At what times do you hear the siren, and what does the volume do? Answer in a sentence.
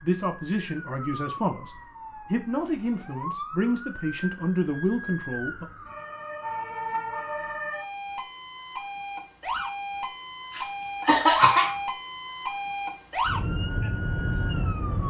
The siren can be heard from 0.0 to 15.0 s, getting louder.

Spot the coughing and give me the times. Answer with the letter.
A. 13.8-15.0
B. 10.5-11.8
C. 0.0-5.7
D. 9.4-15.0
B.